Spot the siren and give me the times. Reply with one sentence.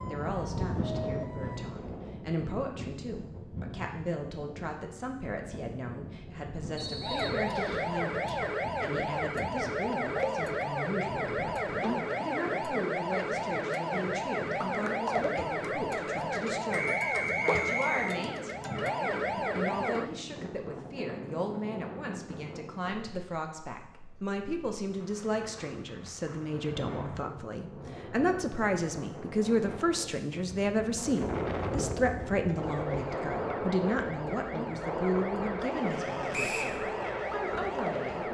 The siren can be heard from 0.0 to 1.7 s, from 7.0 to 20.1 s and from 32.4 to 38.2 s.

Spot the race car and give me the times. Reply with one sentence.
The race car can be heard from 35.8 to 38.2 s.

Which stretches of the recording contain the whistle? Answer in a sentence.
The whistle can be heard from 6.8 to 7.8 s, from 16.7 to 18.1 s and from 36.3 to 36.8 s.